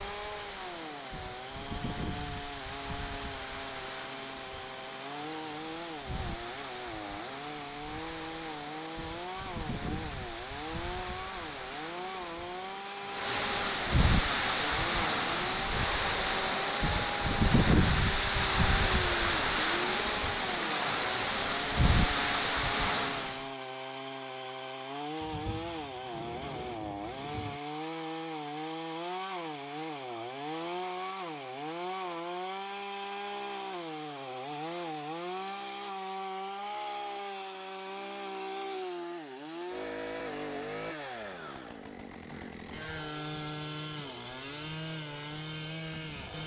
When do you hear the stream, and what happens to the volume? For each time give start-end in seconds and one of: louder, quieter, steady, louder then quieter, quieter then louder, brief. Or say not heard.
0.0-23.5 louder.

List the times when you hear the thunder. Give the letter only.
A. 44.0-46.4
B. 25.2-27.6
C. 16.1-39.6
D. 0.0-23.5
B.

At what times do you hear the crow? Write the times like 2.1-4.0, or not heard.
not heard.